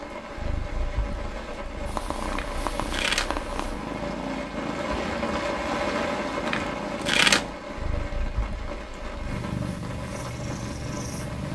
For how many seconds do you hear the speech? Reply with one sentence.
You can't hear the speech here.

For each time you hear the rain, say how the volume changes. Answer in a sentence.
You can hear the rain from 0.0 to 11.4 s, getting louder then quieter.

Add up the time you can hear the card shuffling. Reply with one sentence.
The card shuffling can be heard for 2 seconds in total.